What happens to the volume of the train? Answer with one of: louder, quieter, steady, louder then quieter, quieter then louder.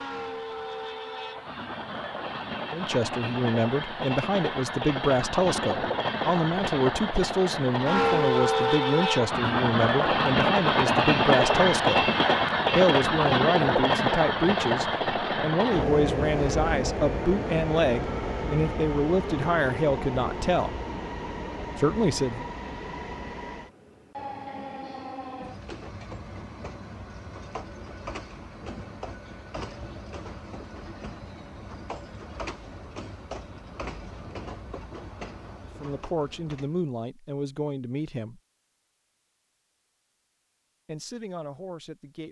louder then quieter.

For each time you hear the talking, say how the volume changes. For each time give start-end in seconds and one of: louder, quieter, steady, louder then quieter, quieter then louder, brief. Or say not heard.
2.7-12.1 steady
12.8-20.8 steady
21.8-22.4 brief
35.8-38.4 brief
40.9-42.2 brief.